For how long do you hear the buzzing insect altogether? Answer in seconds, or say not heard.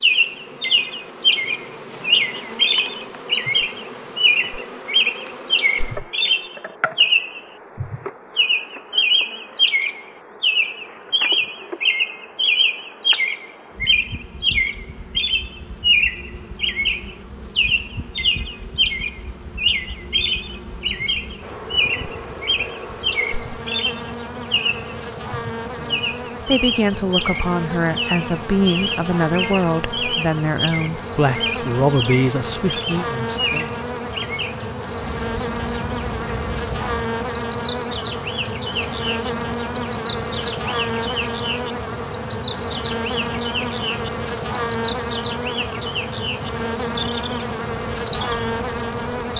49 s.